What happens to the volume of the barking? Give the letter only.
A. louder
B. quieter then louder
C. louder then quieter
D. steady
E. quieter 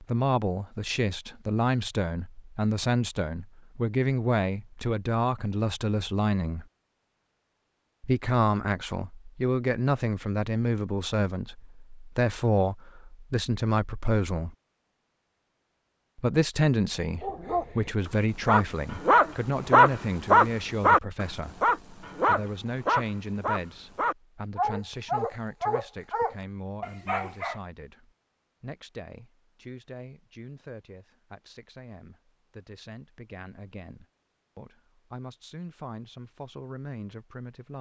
C.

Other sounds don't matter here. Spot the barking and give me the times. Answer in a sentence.
The barking can be heard from 17.2 to 27.6 s.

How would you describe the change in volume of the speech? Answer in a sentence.
The loudness of the speech goes down.